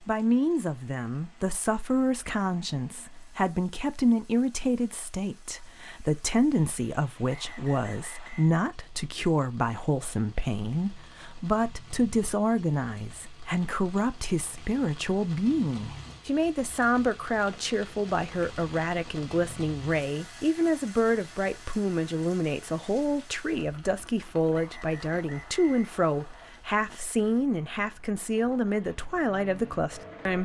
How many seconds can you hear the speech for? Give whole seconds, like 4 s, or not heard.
30 s.